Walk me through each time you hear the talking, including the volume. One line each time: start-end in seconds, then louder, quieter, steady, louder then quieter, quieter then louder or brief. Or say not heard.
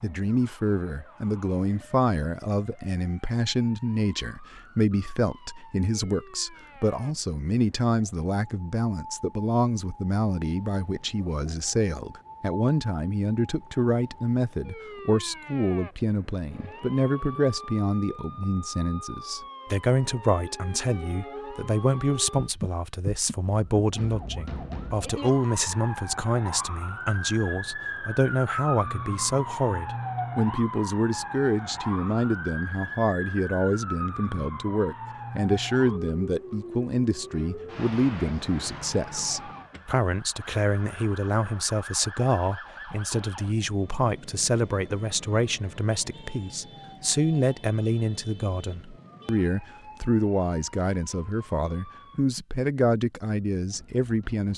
0.0-54.5 steady.